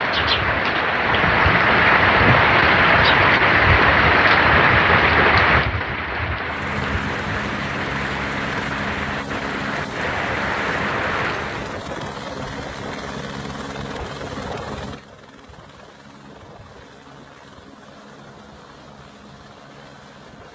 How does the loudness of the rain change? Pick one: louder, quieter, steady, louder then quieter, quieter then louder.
quieter.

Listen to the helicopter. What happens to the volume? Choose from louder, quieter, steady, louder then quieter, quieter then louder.
quieter.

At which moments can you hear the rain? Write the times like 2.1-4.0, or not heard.
0.0-11.8.